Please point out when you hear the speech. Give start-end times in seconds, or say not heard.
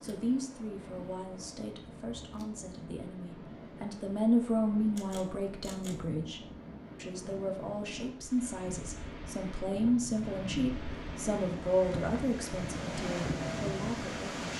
0.0-6.4, 7.0-14.5.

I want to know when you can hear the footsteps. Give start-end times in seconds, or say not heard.
not heard.